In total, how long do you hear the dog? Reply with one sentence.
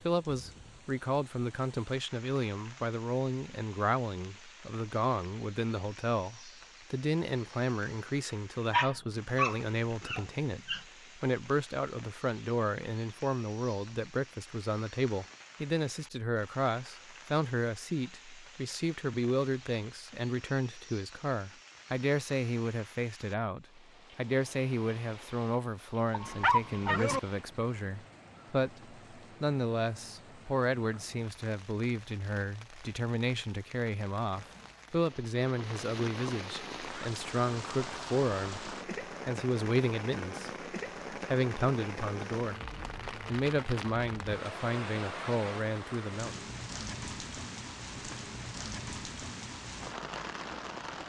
You can hear the dog for 3 seconds altogether.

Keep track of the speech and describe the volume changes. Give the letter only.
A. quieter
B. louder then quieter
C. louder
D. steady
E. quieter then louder
D.